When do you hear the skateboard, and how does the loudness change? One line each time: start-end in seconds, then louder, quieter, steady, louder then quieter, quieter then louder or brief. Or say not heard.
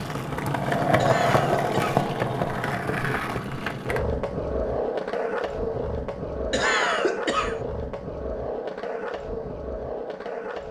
0.0-10.6 quieter.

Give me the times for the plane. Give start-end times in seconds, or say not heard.
not heard.